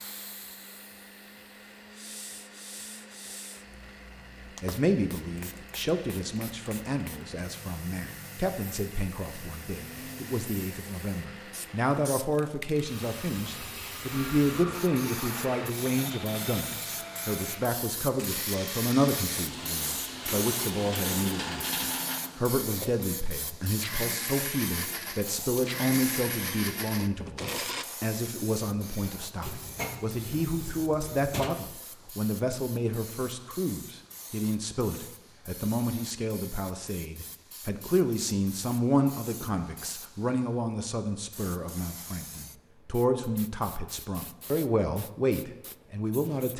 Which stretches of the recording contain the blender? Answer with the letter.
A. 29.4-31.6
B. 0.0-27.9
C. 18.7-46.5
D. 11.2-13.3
B.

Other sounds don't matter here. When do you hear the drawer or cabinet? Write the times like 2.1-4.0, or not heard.
29.4-31.6.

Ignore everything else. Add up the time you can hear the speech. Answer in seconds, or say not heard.
42 s.